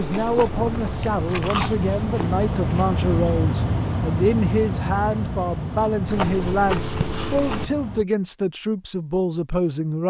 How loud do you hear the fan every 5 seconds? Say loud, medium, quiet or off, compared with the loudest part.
loud, medium.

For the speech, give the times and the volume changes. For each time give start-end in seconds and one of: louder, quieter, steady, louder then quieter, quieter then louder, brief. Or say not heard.
0.0-10.0 steady.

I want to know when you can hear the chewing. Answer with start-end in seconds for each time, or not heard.
0.0-3.0, 6.0-7.7.